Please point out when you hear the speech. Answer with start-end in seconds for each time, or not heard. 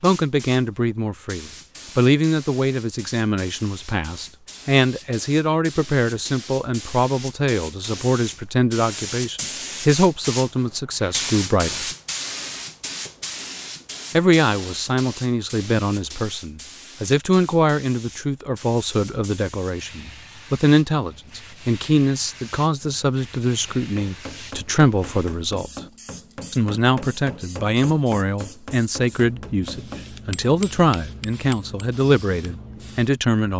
0.0-11.9, 14.1-25.7, 26.5-33.5.